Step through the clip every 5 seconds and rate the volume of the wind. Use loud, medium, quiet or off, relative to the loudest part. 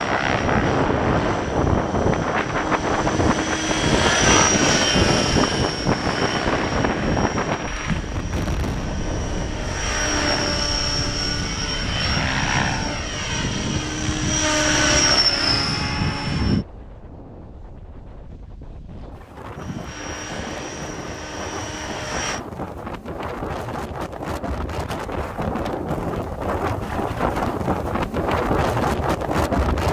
loud, loud, quiet, quiet, medium, loud.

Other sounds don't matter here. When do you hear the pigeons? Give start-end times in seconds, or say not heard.
not heard.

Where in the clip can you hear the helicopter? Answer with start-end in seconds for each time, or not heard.
0.0-16.6, 19.6-22.4.